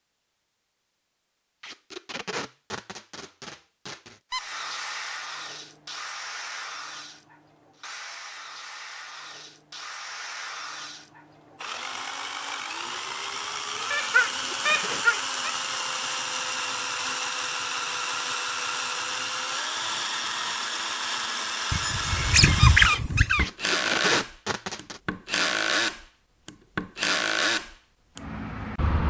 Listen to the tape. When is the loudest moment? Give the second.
24 s.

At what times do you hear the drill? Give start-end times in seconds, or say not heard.
4.3-29.0.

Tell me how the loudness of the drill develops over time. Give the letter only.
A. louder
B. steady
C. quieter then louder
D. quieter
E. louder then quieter
A.